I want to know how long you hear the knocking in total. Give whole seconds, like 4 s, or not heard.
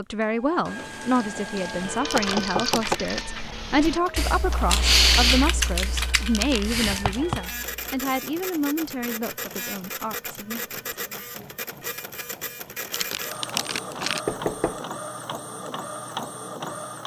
2 s.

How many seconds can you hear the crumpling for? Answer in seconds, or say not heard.
3 s.